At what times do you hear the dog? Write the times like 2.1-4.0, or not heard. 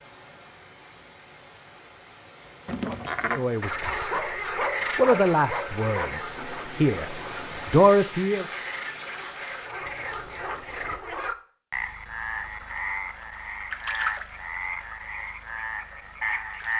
4.1-6.1.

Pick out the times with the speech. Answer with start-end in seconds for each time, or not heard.
3.2-4.2, 4.8-8.4.